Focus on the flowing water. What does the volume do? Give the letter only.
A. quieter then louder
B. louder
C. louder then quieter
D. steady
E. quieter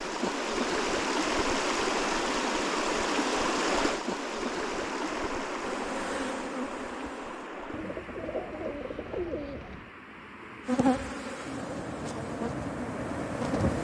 A.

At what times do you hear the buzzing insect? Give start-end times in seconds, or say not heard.
5.6-7.5, 10.7-13.8.